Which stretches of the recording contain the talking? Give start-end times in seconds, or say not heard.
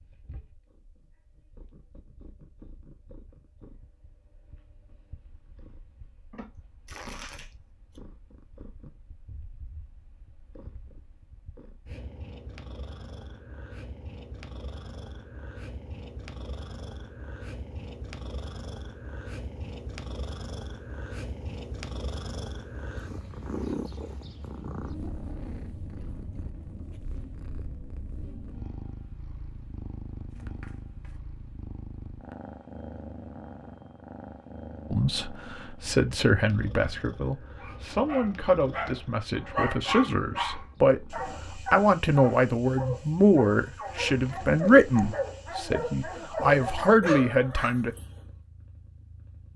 34.9-48.0.